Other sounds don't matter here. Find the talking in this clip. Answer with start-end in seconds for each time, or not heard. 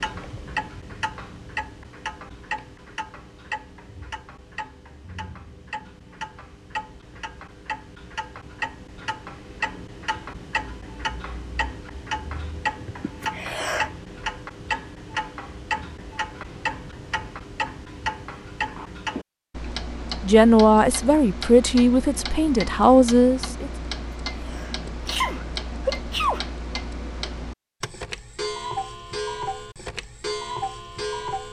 20.2-23.7.